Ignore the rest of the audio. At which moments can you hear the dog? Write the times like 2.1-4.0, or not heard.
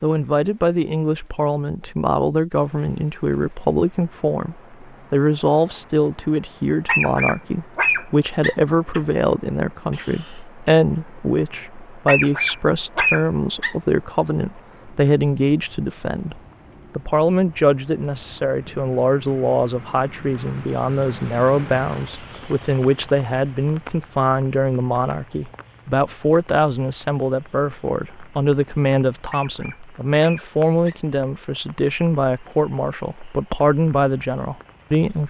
6.8-9.0, 12.1-13.8, 29.3-31.0.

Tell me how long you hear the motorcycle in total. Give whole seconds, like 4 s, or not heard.
not heard.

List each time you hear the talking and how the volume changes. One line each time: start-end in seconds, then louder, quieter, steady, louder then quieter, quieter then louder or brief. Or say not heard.
0.0-35.2 steady.